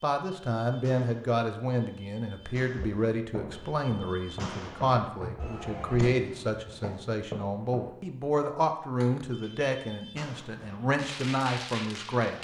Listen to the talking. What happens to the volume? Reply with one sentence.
The volume of the talking stays about the same.